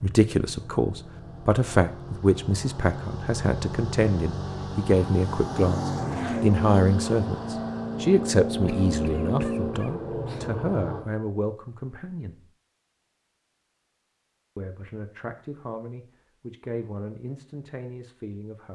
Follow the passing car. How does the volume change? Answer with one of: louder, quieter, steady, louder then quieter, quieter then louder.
louder.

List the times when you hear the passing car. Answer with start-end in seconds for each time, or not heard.
0.0-11.1.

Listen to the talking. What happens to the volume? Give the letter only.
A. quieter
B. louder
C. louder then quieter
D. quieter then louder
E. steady
A.